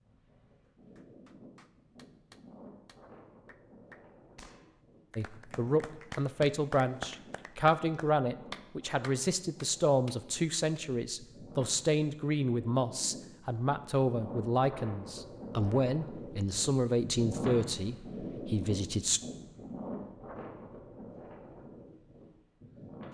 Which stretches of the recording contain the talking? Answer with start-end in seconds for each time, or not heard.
5.2-19.2.